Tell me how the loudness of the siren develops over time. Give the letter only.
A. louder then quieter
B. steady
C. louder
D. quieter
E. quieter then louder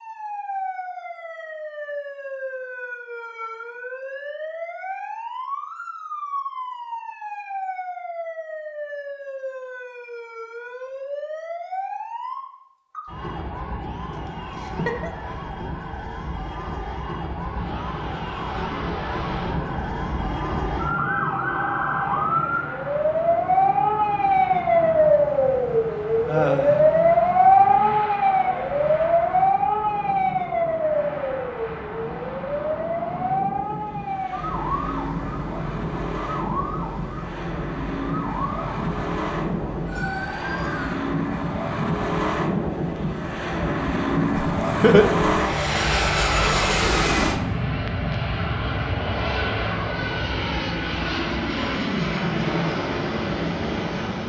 A.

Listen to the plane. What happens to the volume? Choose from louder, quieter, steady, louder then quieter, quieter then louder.
louder.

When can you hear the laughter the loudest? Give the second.
45 s.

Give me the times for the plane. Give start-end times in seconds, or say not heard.
17.2-54.2.